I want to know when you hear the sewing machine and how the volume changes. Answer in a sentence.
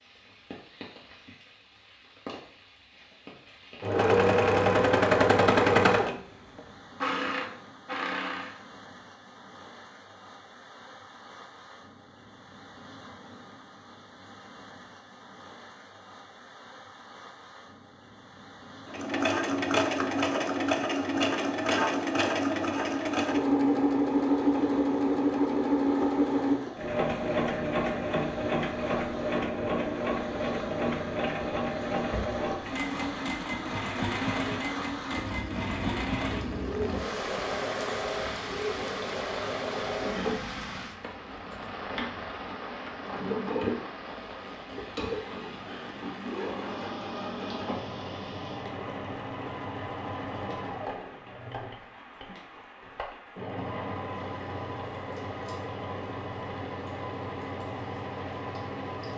You can hear the sewing machine from 3.8 to 8.6 s, getting quieter; and from 18.9 to 59.1 s, getting quieter.